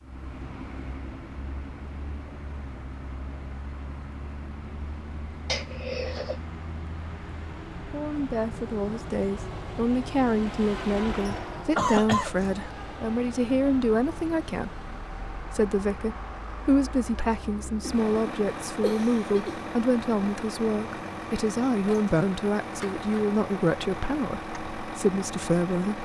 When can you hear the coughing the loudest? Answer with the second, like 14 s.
12 s.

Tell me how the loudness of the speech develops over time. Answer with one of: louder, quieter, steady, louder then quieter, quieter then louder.
steady.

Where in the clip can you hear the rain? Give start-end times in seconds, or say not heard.
not heard.